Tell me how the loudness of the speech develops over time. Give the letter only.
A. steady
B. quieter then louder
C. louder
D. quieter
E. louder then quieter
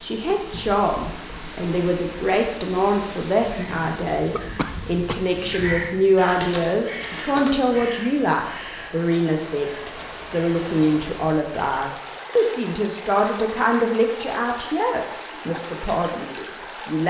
A.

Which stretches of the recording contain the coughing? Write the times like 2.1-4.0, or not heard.
4.3-5.2.